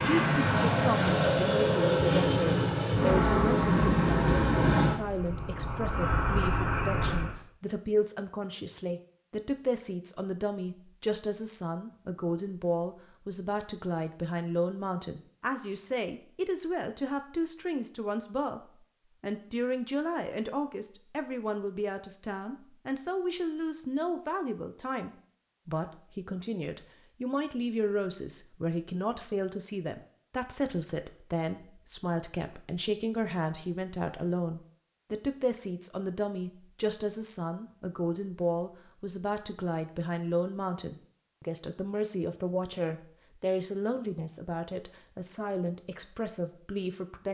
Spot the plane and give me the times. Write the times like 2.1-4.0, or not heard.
0.0-7.3.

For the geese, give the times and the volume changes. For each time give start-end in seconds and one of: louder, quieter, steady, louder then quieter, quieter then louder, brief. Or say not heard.
not heard.